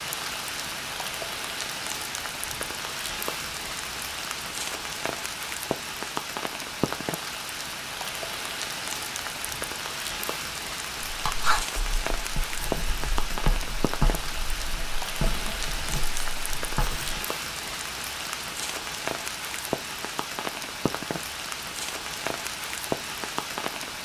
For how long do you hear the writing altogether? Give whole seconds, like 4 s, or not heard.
6 s.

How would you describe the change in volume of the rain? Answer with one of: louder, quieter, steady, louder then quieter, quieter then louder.
steady.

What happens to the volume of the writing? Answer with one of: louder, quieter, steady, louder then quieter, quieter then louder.
quieter.